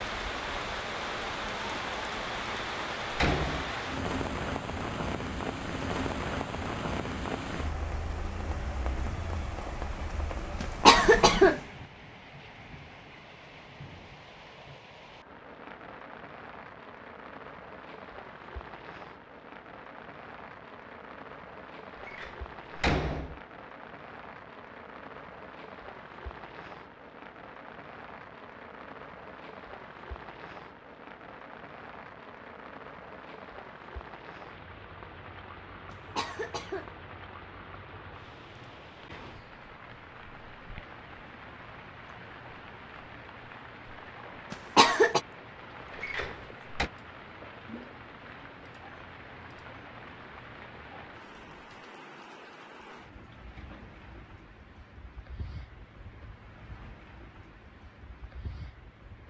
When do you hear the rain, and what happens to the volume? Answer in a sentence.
The rain can be heard from 0.0 to 59.2 s, getting quieter.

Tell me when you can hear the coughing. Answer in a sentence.
You can hear the coughing from 10.6 to 11.6 s, from 35.9 to 36.9 s and from 44.5 to 45.2 s.